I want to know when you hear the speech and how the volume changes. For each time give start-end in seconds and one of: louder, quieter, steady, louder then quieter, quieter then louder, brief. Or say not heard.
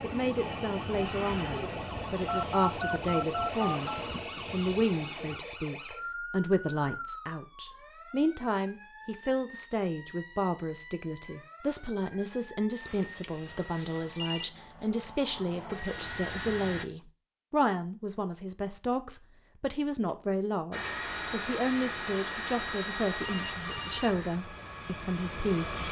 0.0-25.8 steady.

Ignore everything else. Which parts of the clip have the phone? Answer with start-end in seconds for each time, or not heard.
2.2-4.0, 12.8-14.4, 23.2-24.3.